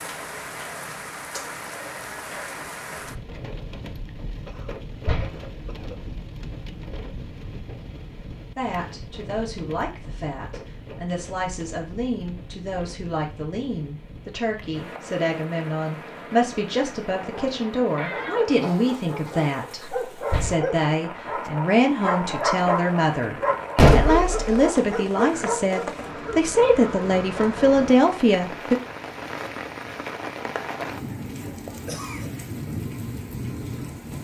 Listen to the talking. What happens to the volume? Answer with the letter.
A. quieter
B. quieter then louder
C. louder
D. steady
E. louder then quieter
C.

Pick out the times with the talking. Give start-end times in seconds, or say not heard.
8.6-28.8.